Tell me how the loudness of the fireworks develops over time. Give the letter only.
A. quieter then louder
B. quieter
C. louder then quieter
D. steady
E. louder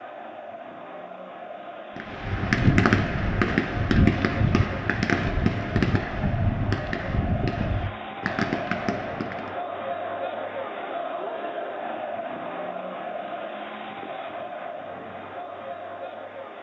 B.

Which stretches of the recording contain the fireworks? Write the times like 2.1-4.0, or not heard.
1.9-9.6.